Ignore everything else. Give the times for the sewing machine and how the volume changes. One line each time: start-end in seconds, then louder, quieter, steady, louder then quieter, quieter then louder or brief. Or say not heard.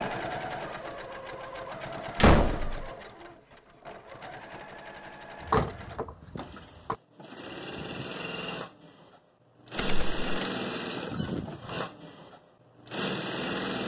0.0-13.8 quieter then louder.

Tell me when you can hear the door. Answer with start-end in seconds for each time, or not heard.
2.1-2.9, 5.5-7.0, 9.8-10.5.